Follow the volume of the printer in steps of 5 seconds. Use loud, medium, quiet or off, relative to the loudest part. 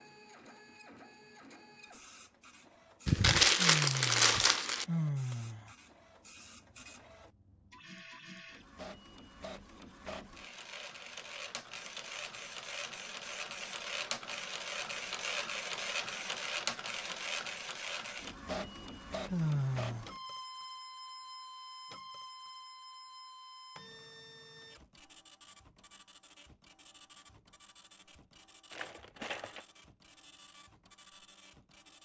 quiet, quiet, loud, loud, medium, quiet, quiet.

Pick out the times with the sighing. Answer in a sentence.
The sighing can be heard from 3.5 to 5.7 s and from 19.3 to 20.1 s.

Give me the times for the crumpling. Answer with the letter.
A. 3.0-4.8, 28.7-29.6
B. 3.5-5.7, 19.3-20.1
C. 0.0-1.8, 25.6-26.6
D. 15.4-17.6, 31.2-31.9
A.